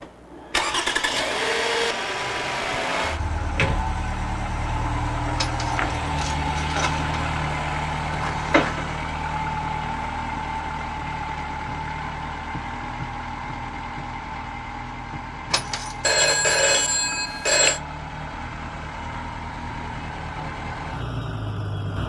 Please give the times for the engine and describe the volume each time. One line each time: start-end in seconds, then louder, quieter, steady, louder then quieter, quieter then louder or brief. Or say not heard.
0.0-22.0 quieter.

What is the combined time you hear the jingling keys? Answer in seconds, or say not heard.
2 s.